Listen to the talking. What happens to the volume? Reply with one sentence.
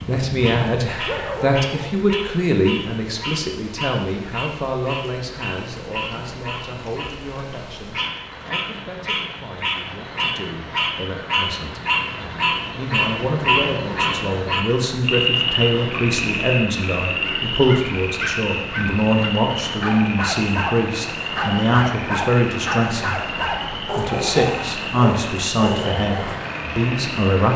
The volume of the talking goes down, then up.